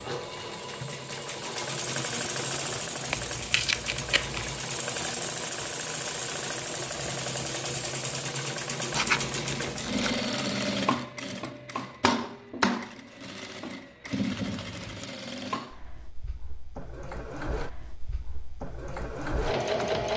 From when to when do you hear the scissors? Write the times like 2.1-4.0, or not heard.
3.1-4.6, 8.9-10.2, 14.3-15.1.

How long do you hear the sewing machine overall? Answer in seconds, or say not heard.
20 s.